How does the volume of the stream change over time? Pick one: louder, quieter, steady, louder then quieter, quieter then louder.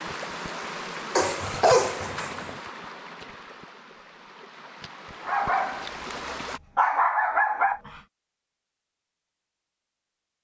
quieter then louder.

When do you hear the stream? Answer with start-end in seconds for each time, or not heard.
0.0-6.6.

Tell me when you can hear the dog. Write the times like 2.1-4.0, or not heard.
1.1-2.6, 5.2-8.0.